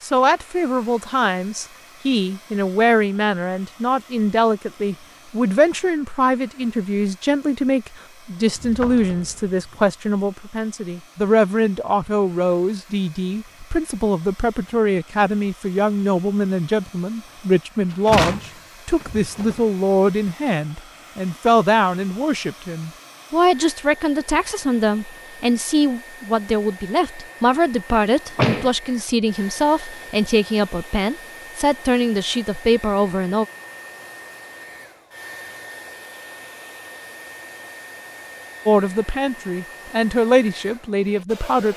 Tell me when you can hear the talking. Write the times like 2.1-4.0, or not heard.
0.0-33.5, 38.6-41.7.